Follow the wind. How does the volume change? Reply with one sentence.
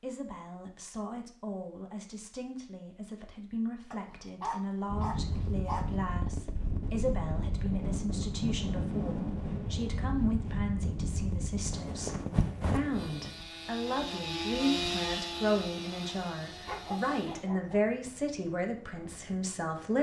The loudness of the wind goes down.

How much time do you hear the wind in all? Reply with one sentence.
The wind can be heard for 15 seconds in total.